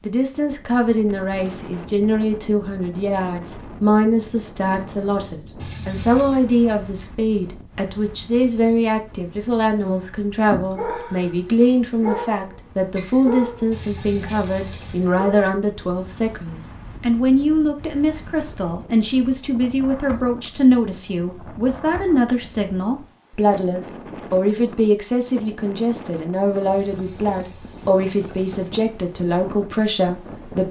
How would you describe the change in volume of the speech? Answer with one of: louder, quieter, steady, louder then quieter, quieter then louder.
steady.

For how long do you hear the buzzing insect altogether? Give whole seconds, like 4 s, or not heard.
not heard.